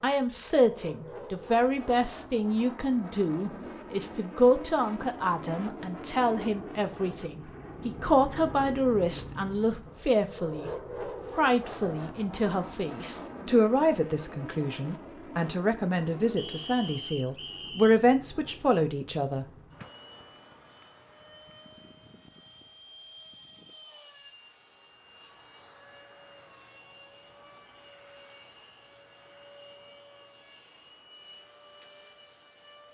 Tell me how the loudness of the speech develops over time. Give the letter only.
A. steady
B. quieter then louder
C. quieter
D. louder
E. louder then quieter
A.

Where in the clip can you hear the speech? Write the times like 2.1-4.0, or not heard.
0.0-10.7, 11.3-19.4.